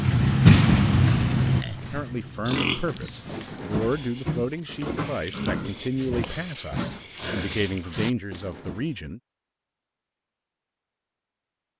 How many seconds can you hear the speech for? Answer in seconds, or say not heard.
7 s.